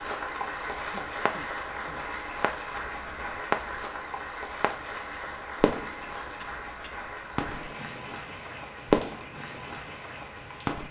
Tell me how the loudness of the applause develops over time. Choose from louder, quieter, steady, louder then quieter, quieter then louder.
quieter.